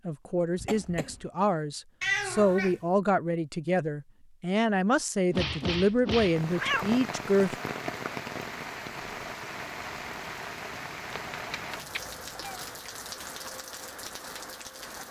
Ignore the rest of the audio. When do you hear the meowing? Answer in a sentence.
The meowing can be heard from 2.0 to 2.8 s, from 5.3 to 6.9 s and from 11.2 to 12.7 s.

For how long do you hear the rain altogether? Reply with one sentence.
You can hear the rain for 9 seconds altogether.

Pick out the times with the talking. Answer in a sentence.
You can hear the talking from 0.1 to 7.5 s.